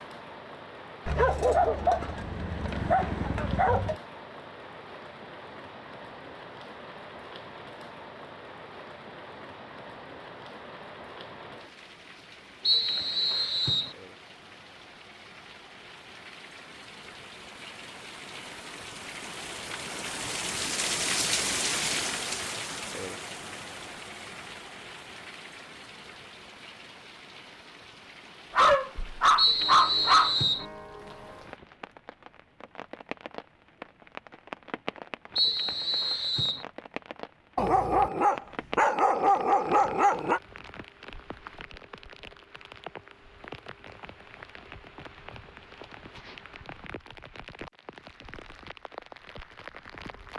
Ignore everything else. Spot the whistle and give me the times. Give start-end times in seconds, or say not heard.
12.6-13.9, 29.4-30.6, 35.4-36.6.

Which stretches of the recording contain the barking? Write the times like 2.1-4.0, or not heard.
1.1-4.0, 28.6-30.4, 37.5-40.4.